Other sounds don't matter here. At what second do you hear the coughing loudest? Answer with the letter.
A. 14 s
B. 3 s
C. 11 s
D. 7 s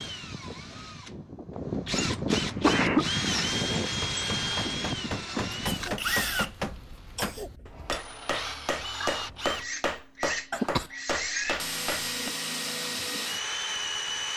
B.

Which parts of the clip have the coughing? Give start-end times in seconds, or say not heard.
2.3-3.0, 5.6-7.5, 10.5-10.9.